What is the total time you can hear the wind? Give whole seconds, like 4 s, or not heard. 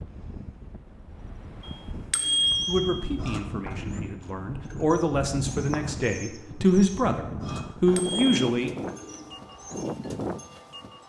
11 s.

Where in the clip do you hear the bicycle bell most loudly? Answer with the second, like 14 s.
2 s.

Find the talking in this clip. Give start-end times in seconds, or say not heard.
2.6-8.7.